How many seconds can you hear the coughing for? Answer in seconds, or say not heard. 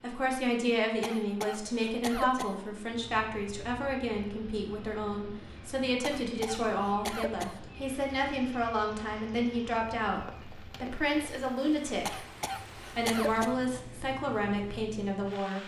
5 s.